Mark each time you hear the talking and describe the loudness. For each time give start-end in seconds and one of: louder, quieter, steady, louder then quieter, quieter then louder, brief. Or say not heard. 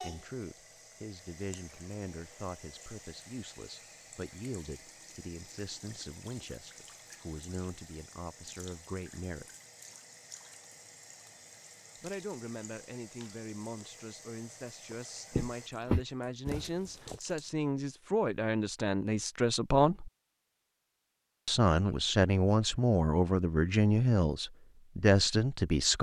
0.0-9.5 steady
12.0-20.1 louder
21.4-25.9 steady.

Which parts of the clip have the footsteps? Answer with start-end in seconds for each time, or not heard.
15.3-17.2.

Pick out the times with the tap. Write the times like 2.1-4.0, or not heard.
0.0-17.6.